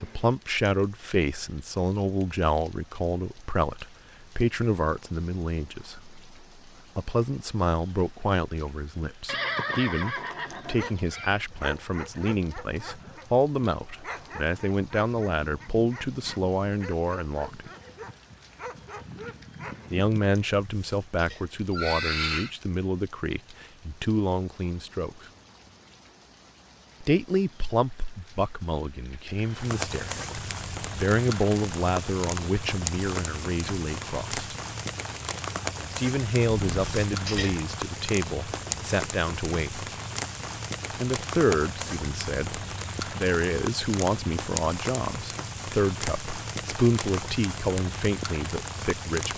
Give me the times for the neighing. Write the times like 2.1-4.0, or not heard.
9.2-11.4, 20.4-22.5, 36.6-37.6.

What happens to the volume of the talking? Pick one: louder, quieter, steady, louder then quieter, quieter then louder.
steady.